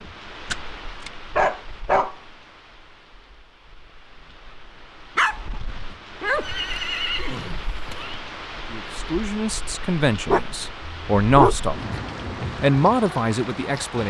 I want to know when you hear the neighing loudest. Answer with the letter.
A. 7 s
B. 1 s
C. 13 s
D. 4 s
A.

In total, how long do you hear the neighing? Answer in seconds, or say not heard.
2 s.